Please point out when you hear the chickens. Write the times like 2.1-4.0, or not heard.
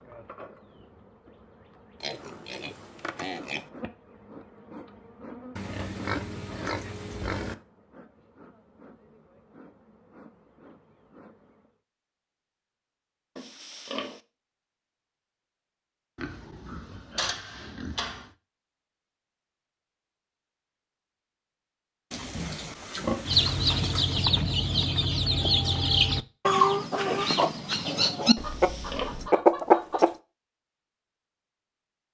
23.2-30.1.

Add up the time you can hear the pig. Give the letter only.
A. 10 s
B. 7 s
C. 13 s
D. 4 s
A.